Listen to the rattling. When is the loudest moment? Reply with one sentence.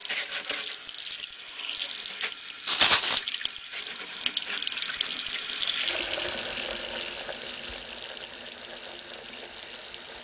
The volume of the rattling peaks at 3 seconds.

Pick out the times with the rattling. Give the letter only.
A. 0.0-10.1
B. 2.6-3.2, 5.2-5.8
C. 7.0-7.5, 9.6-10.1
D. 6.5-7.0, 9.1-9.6
B.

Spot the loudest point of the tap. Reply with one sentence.
The loudest moment of the tap is at 6 seconds.